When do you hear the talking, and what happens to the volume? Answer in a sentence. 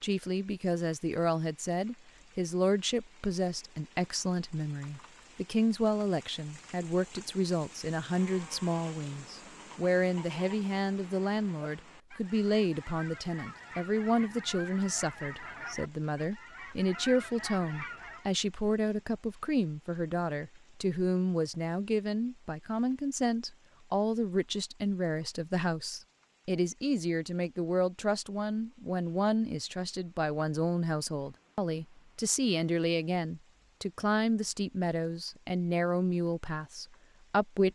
You can hear the talking from 0.0 to 37.7 s, at a steady volume.